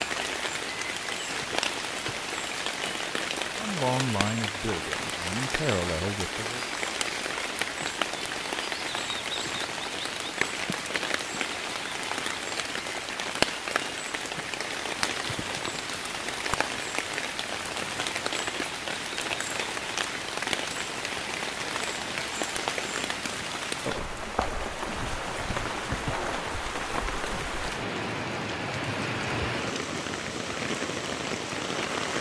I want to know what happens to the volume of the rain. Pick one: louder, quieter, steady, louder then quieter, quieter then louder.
steady.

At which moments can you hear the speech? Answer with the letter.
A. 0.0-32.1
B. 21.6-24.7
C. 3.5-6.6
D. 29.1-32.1
C.